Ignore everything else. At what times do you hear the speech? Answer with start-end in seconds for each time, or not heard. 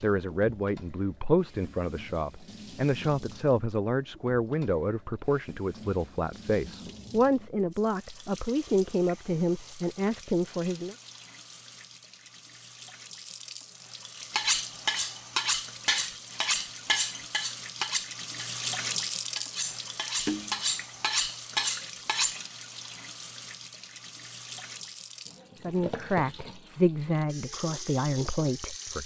0.0-10.9, 25.6-29.0.